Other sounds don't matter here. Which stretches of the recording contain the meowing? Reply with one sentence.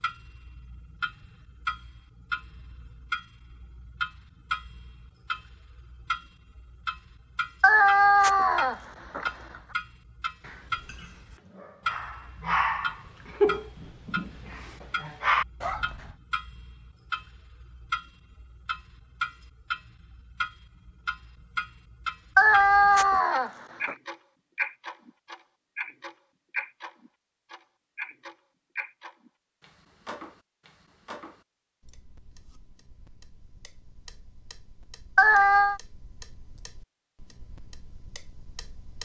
The meowing can be heard from 7.6 to 9.3 s, from 22.4 to 23.9 s and from 35.1 to 35.8 s.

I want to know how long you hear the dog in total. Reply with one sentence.
The dog can be heard for 6 seconds in total.